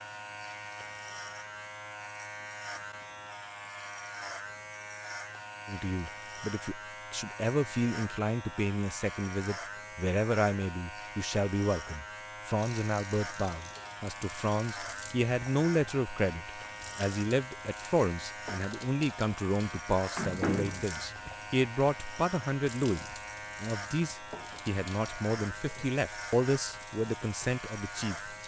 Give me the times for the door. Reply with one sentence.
The door can be heard from 20.1 to 20.9 s.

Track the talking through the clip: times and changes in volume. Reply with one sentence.
You can hear the talking from 5.7 to 28.4 s, at a steady volume.